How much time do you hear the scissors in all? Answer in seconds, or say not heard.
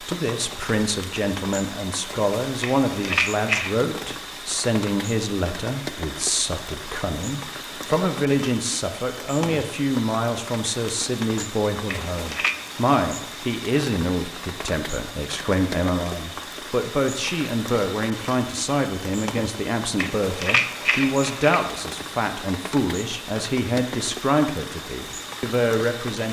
4 s.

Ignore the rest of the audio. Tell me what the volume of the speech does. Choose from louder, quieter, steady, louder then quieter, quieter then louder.
steady.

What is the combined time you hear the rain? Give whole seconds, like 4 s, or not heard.
26 s.